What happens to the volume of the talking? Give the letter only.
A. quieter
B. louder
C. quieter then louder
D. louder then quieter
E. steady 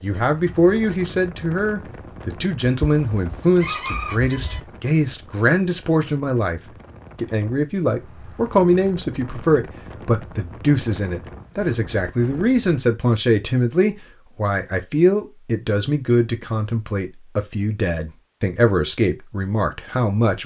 E.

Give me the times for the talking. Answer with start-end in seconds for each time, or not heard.
0.0-20.4.